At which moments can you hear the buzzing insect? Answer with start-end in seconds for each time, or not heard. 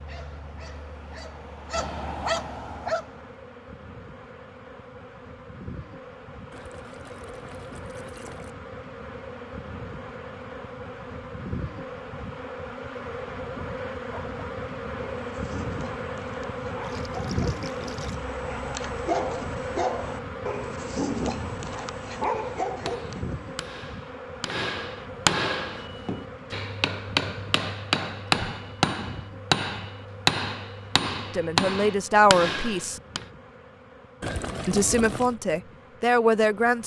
0.0-36.8.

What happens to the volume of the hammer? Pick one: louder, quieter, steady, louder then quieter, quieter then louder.
louder.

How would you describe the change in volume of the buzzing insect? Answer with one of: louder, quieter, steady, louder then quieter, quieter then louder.
louder then quieter.